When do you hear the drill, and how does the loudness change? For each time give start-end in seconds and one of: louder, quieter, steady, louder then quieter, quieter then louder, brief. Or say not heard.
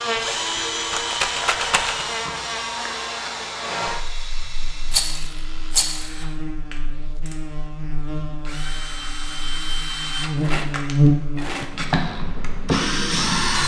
0.0-13.6 quieter then louder.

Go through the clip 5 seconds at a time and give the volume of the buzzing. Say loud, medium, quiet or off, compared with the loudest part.
medium, quiet, loud.